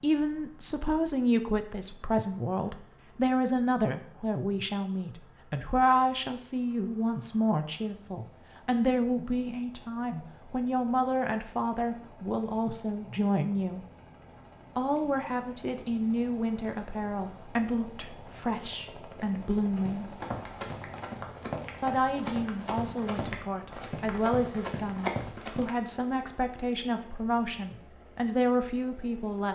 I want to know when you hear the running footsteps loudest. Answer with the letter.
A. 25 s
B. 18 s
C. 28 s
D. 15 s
A.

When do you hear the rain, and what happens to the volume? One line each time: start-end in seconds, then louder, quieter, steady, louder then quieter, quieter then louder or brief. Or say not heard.
not heard.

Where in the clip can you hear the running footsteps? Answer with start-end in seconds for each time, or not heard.
19.8-25.7.